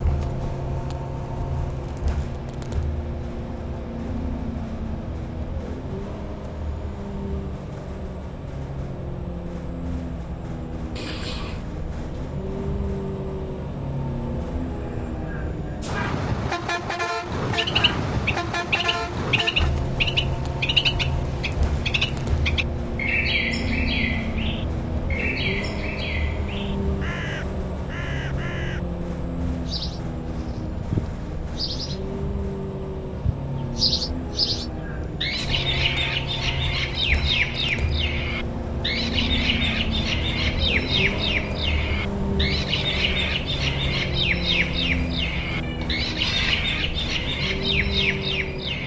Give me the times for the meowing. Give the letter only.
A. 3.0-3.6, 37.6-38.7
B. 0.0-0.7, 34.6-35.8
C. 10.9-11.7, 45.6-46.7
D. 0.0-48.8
C.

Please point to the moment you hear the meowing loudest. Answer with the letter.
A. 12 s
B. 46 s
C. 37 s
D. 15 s
B.